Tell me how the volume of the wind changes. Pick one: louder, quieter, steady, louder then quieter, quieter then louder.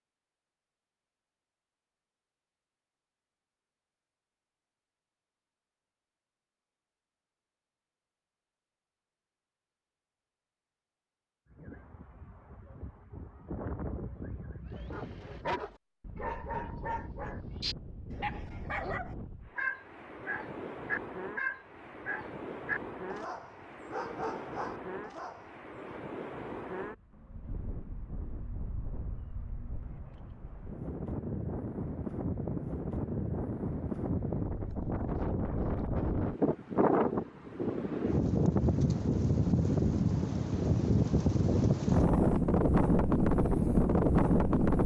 louder.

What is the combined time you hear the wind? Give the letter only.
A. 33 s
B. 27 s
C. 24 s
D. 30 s
A.